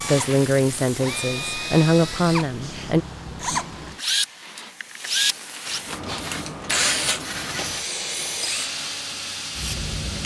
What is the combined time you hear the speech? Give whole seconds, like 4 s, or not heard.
3 s.